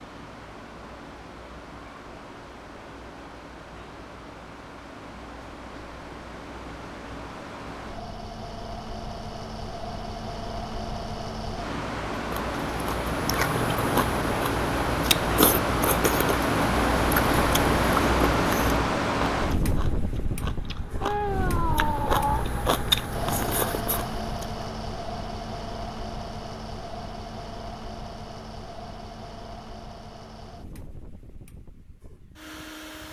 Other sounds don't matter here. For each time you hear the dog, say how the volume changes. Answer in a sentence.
The dog can't be heard in this clip.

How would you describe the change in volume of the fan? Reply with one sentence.
The volume of the fan goes up, then down.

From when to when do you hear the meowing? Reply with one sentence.
You can hear the meowing from 21.0 to 22.4 s.